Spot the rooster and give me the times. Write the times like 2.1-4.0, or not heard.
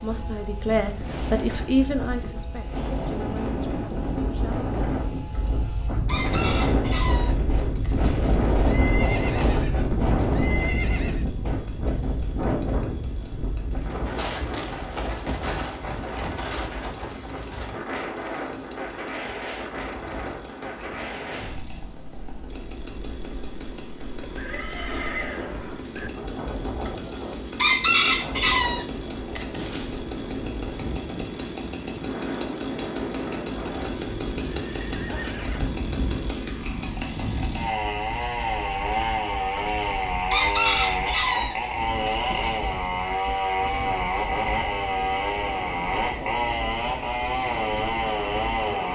5.3-8.4, 26.9-30.0, 39.5-42.7.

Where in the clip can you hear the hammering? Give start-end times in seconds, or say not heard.
not heard.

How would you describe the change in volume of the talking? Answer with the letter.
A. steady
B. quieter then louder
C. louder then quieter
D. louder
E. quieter
E.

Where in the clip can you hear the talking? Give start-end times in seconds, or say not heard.
0.0-4.7.